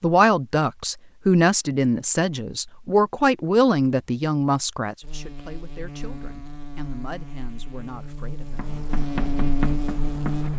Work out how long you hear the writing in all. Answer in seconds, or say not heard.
2 s.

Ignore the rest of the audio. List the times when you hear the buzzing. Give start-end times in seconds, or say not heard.
5.0-10.5.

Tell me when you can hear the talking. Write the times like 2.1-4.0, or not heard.
0.0-8.7.